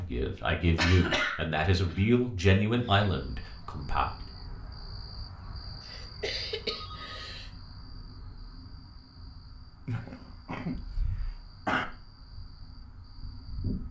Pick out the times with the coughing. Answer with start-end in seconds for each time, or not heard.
0.3-2.0, 5.8-7.5, 9.8-11.8.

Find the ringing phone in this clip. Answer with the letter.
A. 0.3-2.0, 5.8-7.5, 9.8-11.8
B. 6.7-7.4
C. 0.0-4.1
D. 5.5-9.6
B.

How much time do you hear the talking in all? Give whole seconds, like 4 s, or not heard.
4 s.